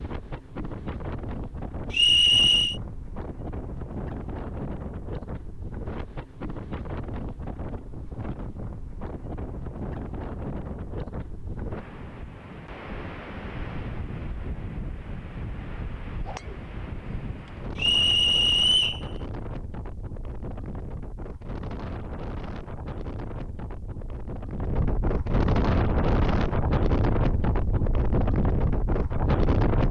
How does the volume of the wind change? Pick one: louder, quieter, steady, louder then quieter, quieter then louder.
louder.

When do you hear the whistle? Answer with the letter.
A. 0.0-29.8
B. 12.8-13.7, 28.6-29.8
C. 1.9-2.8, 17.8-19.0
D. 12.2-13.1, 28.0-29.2
C.